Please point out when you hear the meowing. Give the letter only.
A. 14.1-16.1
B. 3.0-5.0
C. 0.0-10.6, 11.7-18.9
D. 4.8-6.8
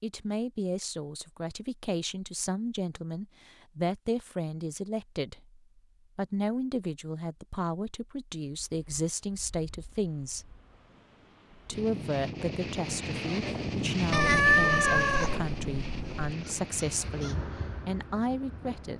A.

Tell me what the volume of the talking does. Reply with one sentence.
The loudness of the talking stays about the same.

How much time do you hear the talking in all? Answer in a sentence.
You can hear the talking for 18 seconds altogether.